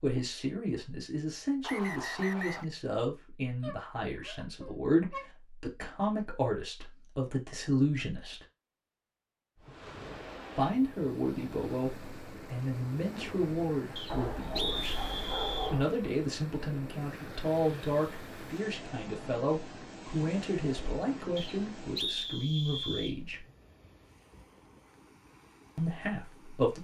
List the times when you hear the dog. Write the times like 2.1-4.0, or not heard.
3.6-5.3, 14.1-15.8.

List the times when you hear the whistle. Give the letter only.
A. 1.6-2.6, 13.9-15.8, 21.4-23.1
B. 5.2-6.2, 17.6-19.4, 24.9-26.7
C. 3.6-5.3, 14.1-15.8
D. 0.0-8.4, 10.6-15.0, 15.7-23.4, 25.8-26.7
A.